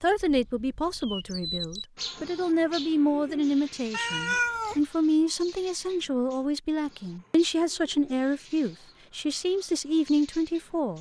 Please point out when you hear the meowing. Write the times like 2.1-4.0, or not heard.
3.9-4.8.